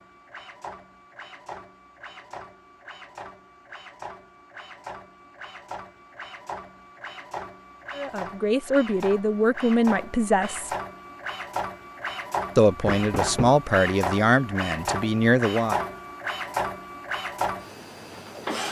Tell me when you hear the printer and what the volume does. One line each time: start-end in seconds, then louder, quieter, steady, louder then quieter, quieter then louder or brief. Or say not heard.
0.0-18.6 louder.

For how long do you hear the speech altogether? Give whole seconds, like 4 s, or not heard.
6 s.